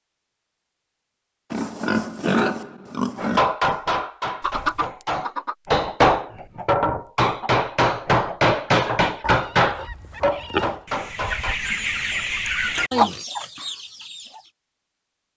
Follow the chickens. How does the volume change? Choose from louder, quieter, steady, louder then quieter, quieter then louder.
quieter then louder.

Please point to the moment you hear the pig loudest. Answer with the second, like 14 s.
2 s.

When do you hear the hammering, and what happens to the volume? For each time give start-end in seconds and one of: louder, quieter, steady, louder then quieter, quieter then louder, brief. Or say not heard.
3.1-11.6 louder then quieter.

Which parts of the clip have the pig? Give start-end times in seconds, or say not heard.
1.5-3.4, 9.2-10.7.